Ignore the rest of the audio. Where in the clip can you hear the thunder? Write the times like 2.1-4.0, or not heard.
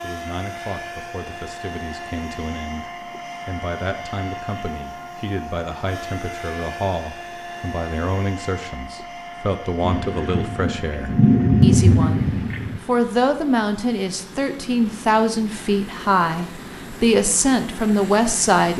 9.8-12.8.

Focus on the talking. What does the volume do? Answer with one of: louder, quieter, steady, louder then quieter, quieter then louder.
louder.